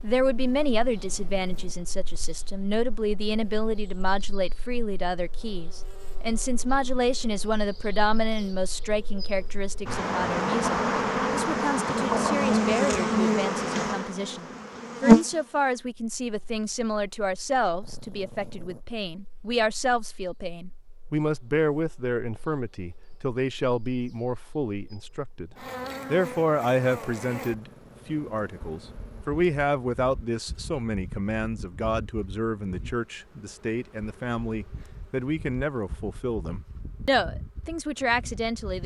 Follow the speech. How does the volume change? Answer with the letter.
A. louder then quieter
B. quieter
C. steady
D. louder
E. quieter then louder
C.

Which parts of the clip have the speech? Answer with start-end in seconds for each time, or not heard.
0.0-38.8.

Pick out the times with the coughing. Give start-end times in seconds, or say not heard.
not heard.